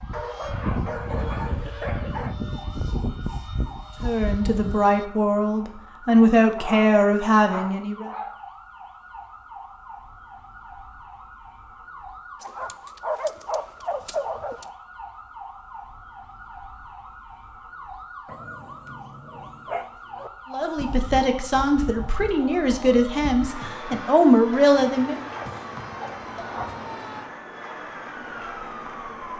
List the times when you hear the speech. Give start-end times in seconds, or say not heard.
4.0-8.1, 20.5-25.1.